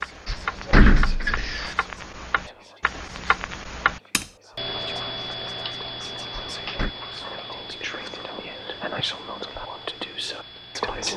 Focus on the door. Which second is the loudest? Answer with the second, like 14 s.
1 s.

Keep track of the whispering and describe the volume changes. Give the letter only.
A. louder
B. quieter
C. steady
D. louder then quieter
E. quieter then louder
A.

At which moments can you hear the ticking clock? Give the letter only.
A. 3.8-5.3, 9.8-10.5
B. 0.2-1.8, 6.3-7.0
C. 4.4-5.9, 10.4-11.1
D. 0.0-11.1
D.